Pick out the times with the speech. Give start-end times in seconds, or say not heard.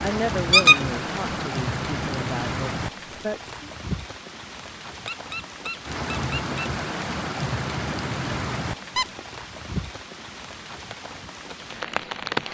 0.0-3.5.